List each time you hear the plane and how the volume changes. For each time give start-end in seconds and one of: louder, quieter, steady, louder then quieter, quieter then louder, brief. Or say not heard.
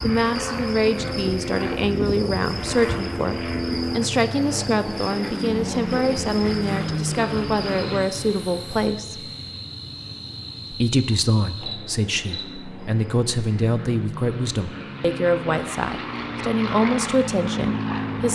0.0-8.1 steady
11.5-18.3 louder.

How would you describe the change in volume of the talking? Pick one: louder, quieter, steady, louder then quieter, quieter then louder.
steady.